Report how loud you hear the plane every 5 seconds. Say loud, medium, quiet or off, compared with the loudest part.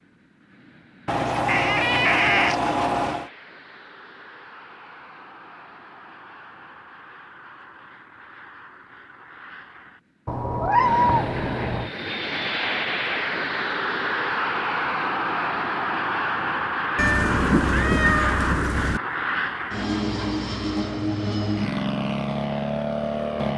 quiet, quiet, loud, loud, loud.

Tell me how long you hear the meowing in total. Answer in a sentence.
You can hear the meowing for 6 seconds altogether.